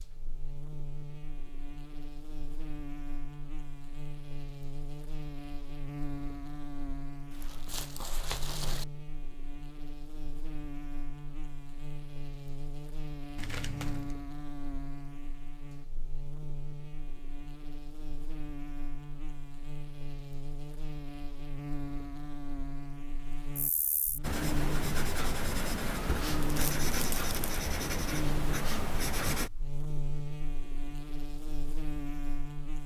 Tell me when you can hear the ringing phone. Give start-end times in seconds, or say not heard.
not heard.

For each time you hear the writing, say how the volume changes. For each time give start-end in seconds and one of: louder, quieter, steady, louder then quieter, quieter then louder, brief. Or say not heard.
24.2-29.5 steady.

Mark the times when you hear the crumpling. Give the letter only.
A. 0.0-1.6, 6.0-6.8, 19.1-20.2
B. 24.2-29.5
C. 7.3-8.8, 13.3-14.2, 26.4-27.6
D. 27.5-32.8
C.